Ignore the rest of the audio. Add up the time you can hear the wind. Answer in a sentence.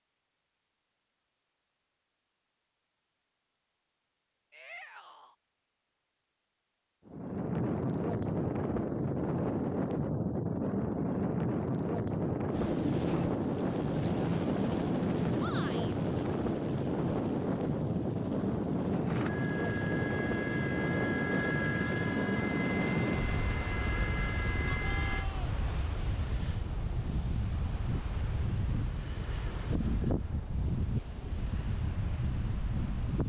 The wind can be heard for 26 seconds in total.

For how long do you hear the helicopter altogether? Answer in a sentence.
The helicopter can be heard for 13 seconds in total.